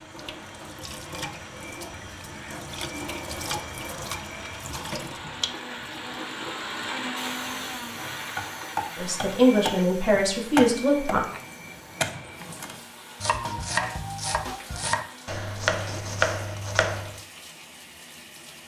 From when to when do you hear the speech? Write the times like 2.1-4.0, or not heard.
8.9-11.2.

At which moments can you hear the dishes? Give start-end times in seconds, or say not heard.
not heard.